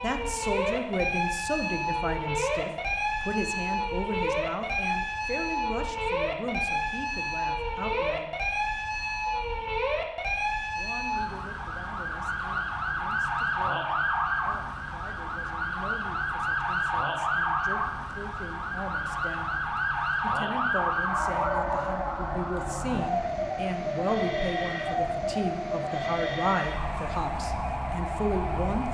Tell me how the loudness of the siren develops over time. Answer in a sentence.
The volume of the siren stays about the same.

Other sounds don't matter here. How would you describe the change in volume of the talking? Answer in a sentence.
The volume of the talking goes down, then up.